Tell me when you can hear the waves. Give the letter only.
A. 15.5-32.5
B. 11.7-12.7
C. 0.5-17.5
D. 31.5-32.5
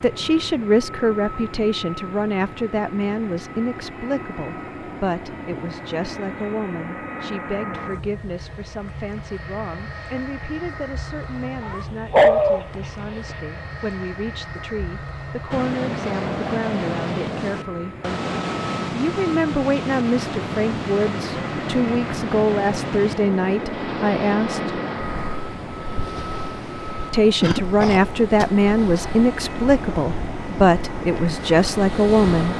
A.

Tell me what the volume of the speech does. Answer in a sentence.
The volume of the speech goes down, then up.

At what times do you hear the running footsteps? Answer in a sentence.
The running footsteps can't be heard in this clip.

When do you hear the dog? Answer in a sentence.
You can hear the dog from 11.7 to 12.7 s.